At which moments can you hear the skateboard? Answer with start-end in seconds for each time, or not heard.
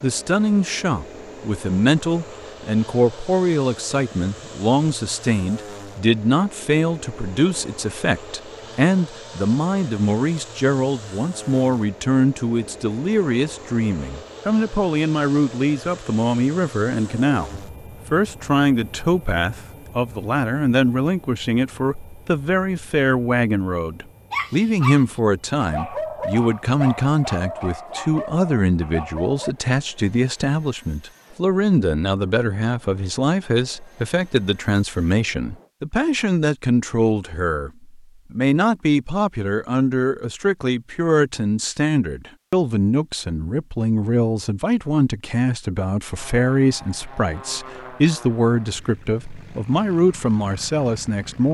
not heard.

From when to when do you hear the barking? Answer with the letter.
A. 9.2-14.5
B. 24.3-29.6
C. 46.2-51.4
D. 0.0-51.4
B.